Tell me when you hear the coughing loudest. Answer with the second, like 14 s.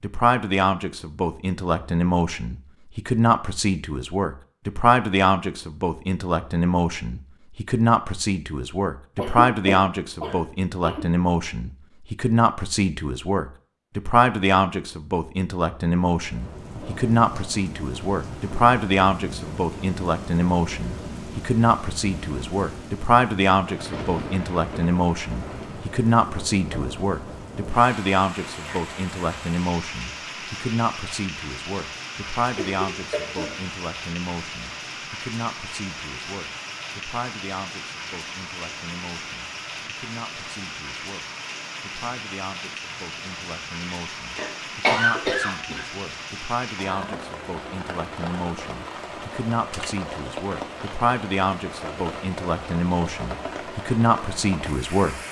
45 s.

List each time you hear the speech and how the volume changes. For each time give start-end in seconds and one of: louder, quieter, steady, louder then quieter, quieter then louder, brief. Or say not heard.
0.0-55.1 quieter then louder.